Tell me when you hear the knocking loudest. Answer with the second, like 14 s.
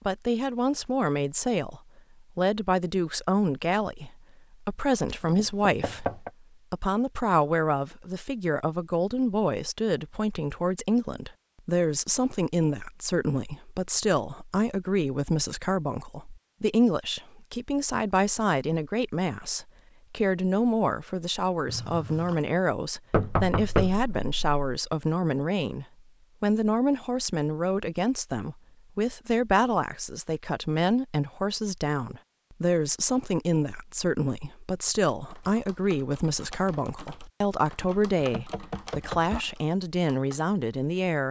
24 s.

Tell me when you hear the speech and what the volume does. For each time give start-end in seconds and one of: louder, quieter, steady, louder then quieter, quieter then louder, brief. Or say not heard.
0.1-41.2 steady.